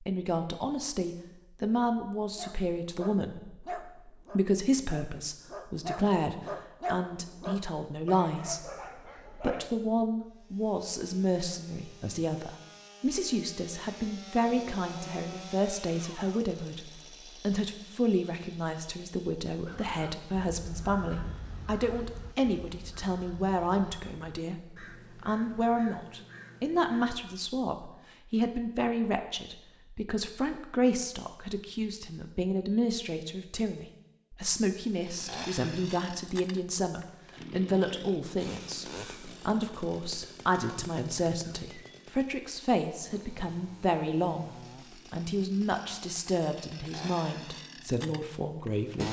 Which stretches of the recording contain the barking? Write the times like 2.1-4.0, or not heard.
2.4-9.7.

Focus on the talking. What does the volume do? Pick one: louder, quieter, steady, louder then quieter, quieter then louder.
steady.